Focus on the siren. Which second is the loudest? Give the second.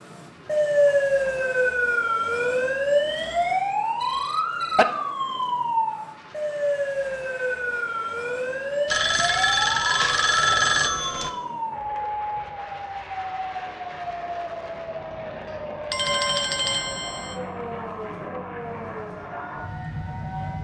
1 s.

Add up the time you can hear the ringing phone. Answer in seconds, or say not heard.
5 s.